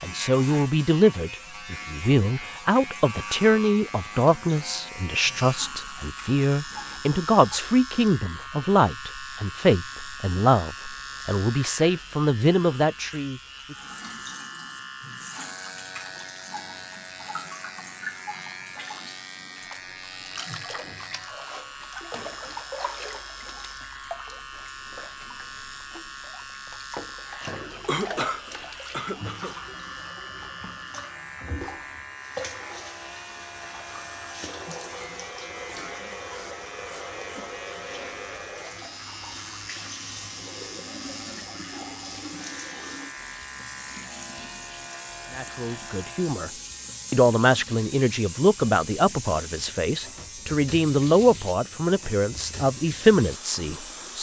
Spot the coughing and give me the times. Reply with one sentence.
The coughing can be heard from 27.9 to 29.6 s.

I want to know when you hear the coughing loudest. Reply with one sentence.
The volume of the coughing peaks at 28 seconds.